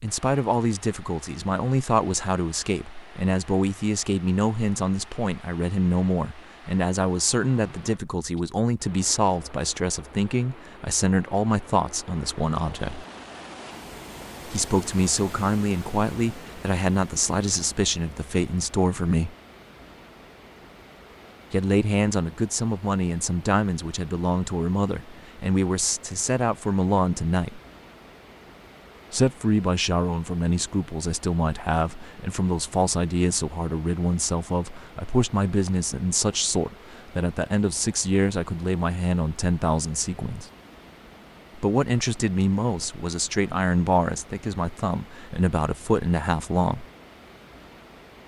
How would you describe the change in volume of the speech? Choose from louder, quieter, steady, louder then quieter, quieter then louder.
steady.